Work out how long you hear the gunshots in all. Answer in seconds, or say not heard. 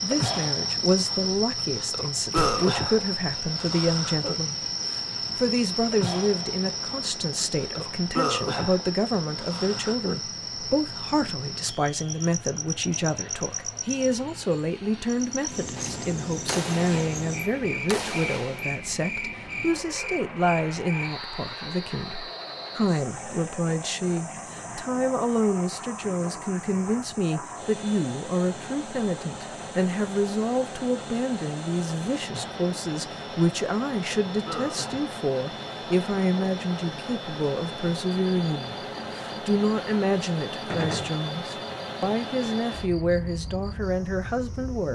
4 s.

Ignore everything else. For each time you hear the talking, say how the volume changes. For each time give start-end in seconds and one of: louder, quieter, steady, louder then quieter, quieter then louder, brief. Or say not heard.
0.0-44.8 steady.